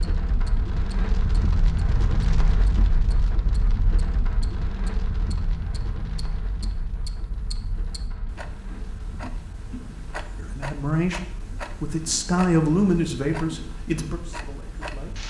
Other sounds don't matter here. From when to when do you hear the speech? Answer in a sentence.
The speech can be heard from 10.3 to 15.2 s.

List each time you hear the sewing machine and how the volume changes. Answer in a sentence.
You can't hear the sewing machine here.